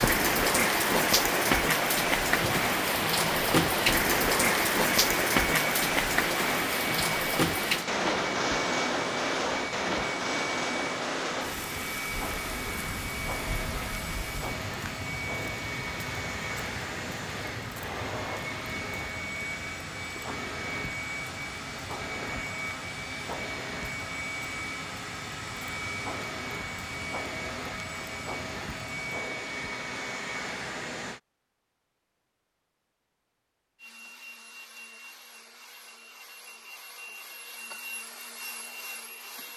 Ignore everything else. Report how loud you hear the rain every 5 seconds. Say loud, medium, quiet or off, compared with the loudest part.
loud, loud, medium, quiet, quiet, quiet, off, off.